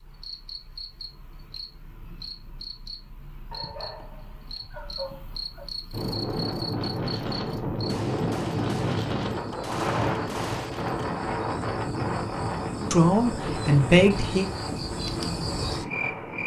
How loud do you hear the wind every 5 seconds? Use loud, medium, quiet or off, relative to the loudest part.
off, loud, loud, medium.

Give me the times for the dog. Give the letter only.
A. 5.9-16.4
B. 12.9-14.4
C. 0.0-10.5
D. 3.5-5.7
D.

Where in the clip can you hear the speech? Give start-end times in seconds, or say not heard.
12.9-14.4.